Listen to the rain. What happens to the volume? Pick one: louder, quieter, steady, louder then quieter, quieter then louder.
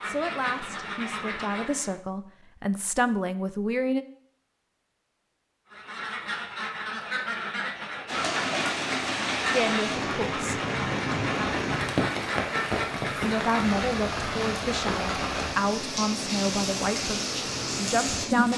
steady.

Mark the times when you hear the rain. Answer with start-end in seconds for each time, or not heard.
8.1-18.5.